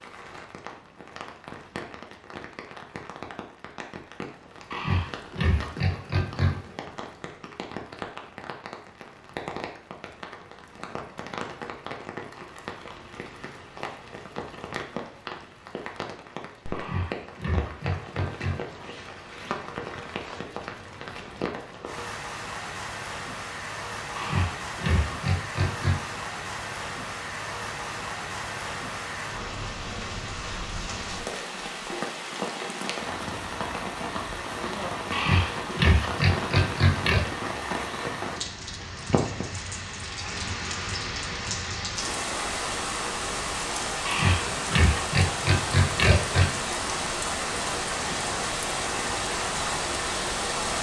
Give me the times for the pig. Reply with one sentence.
You can hear the pig from 4.7 to 6.6 s, from 16.7 to 18.6 s, from 24.1 to 26.0 s, from 35.1 to 37.2 s and from 44.0 to 46.5 s.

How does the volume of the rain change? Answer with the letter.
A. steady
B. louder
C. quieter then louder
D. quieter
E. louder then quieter
B.